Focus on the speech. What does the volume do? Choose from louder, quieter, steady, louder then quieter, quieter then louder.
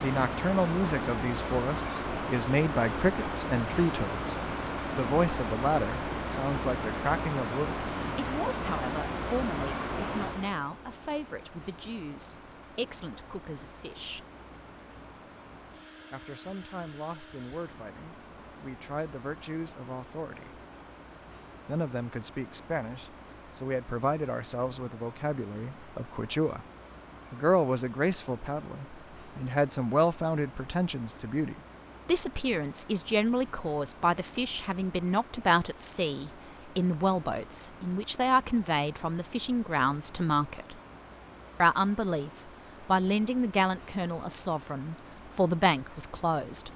quieter then louder.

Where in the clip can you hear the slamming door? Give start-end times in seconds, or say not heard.
not heard.